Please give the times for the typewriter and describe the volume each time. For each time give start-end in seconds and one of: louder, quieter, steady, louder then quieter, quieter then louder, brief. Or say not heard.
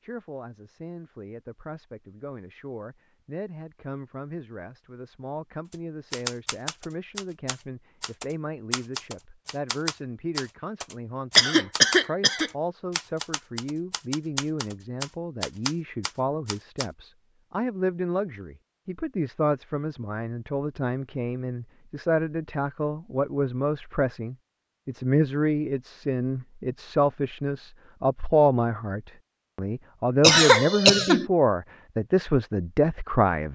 5.7-16.9 steady.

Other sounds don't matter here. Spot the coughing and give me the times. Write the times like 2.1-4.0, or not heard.
11.3-12.5, 30.2-31.2.